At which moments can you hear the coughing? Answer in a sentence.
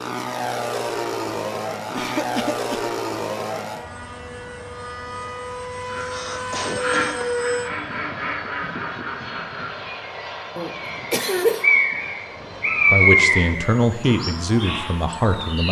The coughing can be heard from 1.9 to 2.9 s, from 6.0 to 7.2 s and from 10.6 to 11.7 s.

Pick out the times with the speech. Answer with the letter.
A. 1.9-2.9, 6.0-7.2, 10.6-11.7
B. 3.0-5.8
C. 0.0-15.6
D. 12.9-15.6
D.